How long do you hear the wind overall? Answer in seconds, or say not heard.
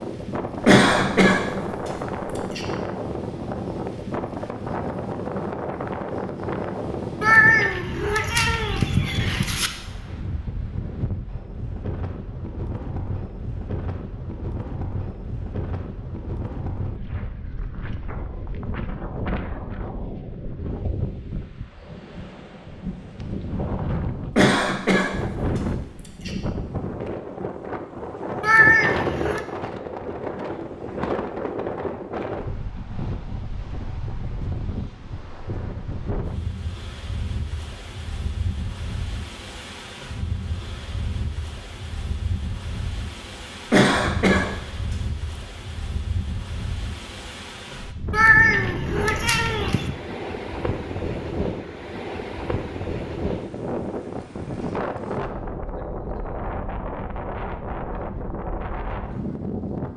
60 s.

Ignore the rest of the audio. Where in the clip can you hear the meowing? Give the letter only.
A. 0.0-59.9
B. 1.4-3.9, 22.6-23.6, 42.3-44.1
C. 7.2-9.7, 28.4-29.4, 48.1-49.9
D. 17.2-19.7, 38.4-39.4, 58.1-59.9
C.